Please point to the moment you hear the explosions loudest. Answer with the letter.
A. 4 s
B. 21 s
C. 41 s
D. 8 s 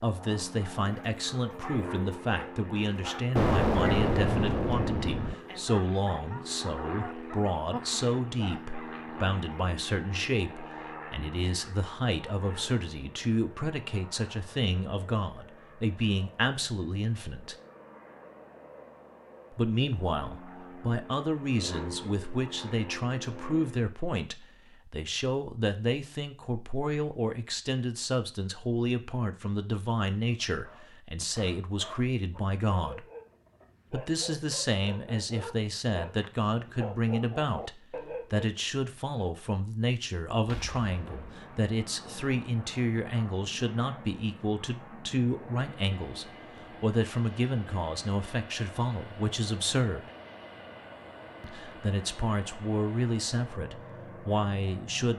A.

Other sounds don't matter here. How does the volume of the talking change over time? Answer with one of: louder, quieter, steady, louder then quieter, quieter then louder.
steady.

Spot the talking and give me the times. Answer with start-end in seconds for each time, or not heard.
0.0-17.6, 19.5-33.0, 33.9-50.1, 51.4-55.1.